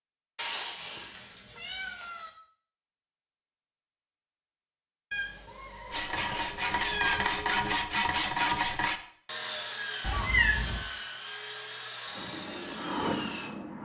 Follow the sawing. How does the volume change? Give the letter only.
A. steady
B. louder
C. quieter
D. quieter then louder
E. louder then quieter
C.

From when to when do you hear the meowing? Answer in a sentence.
The meowing can be heard from 0.3 to 2.3 s, from 5.1 to 7.3 s and from 10.0 to 10.8 s.